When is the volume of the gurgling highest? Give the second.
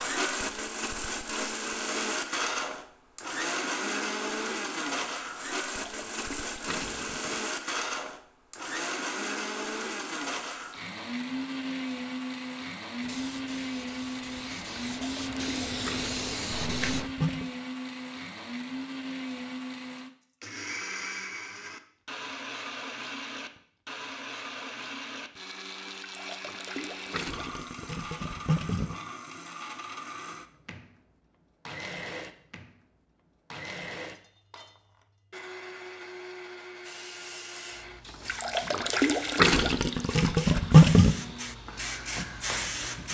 41 s.